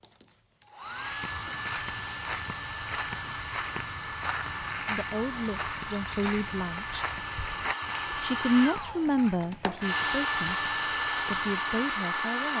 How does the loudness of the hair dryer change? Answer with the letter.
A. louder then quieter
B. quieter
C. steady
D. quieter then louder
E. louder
E.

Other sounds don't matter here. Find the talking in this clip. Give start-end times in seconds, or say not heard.
4.8-7.0, 8.2-12.5.